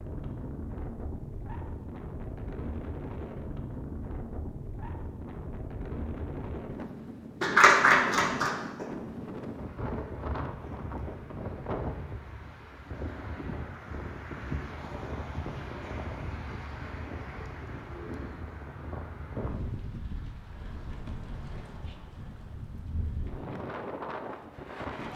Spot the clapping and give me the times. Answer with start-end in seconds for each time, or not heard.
7.4-8.8.